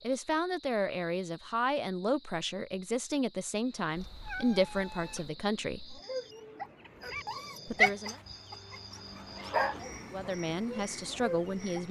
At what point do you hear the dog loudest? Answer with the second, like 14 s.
8 s.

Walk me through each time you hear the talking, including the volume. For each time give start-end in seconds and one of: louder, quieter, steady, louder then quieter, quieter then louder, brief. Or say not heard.
0.0-6.0 steady
7.7-8.2 brief
10.1-11.8 brief.